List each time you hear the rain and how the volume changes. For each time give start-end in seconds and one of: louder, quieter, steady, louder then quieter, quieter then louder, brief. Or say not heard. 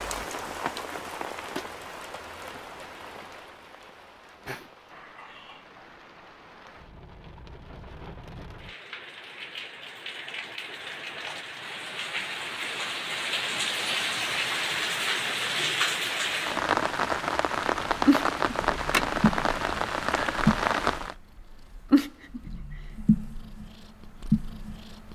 0.0-21.1 quieter then louder.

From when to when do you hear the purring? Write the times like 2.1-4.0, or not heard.
17.9-25.1.